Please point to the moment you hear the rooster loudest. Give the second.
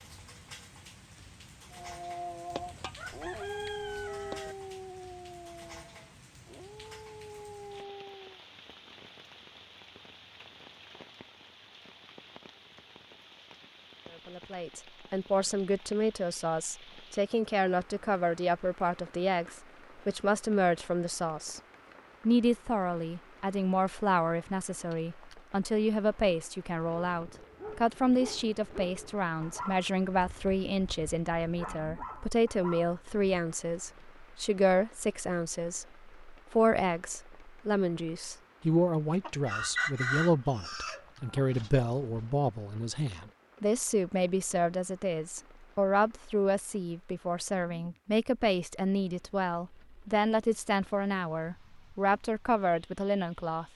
40 s.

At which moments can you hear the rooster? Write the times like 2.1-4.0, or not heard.
2.5-4.5, 39.2-42.2.